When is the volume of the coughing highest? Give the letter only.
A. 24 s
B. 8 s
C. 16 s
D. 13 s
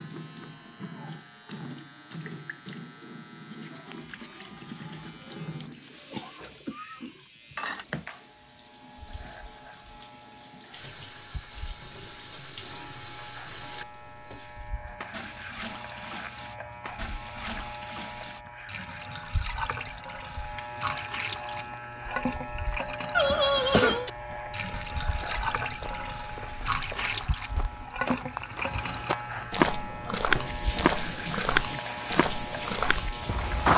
A.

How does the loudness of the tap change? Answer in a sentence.
The loudness of the tap goes up.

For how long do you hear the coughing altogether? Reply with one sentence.
You can hear the coughing for 3 seconds altogether.